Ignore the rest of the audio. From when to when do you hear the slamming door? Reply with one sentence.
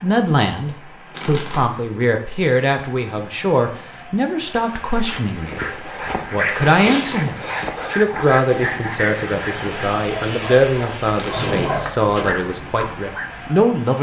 The slamming door can be heard from 11.3 to 12.4 s.